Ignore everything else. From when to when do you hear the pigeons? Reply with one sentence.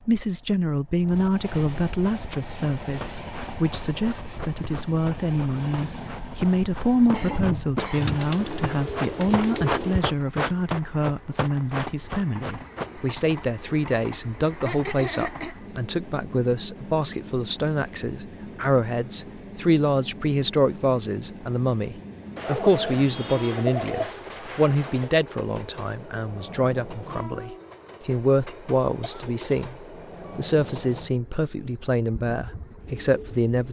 The pigeons can be heard from 8.0 to 10.0 s and from 22.4 to 25.1 s.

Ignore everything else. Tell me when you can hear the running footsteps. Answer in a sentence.
You can hear the running footsteps from 2.1 to 12.9 s.